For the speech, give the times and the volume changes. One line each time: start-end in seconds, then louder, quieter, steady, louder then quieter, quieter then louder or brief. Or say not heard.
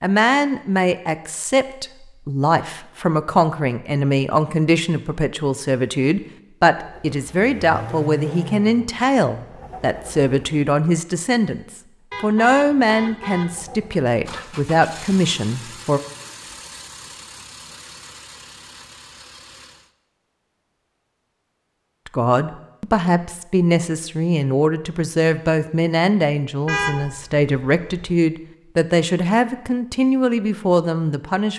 0.0-16.0 steady
22.1-31.5 steady.